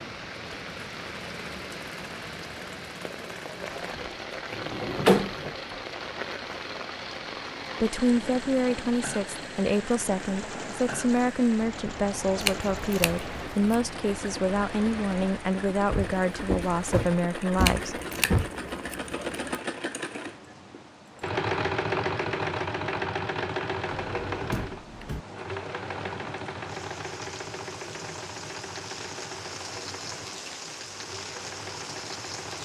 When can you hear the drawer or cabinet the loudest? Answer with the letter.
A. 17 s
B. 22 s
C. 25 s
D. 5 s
D.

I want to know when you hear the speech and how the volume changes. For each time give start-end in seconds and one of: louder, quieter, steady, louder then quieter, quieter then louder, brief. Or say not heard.
7.8-18.0 steady.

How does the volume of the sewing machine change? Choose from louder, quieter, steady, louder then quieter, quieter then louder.
louder then quieter.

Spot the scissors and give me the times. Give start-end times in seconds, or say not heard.
12.3-13.8, 17.6-19.6.